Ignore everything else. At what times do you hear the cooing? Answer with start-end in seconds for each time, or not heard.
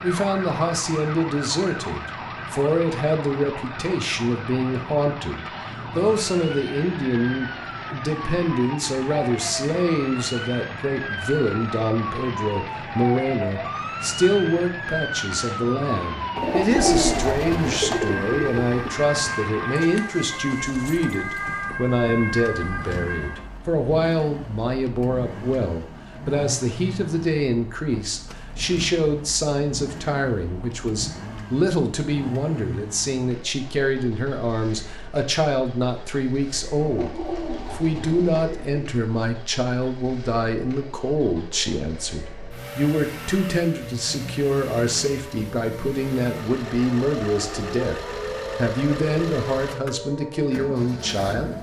16.4-18.9, 36.8-38.9.